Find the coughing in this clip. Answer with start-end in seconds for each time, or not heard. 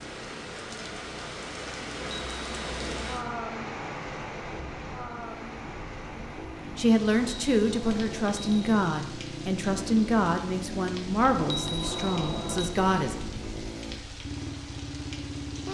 not heard.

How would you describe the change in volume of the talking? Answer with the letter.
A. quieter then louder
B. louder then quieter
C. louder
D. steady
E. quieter
E.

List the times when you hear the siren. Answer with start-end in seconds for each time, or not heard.
not heard.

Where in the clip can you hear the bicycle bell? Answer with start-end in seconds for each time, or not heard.
2.0-3.1, 7.2-8.8, 11.3-12.8.